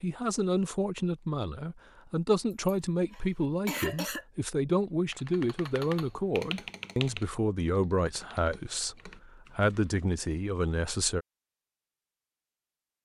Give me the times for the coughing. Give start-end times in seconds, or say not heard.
2.5-4.2.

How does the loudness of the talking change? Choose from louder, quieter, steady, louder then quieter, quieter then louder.
steady.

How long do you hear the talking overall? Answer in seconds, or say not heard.
11 s.